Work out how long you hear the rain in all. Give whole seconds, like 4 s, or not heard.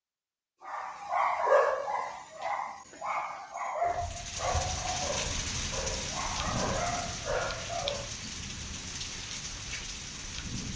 7 s.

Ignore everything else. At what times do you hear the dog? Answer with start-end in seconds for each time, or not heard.
0.6-8.1.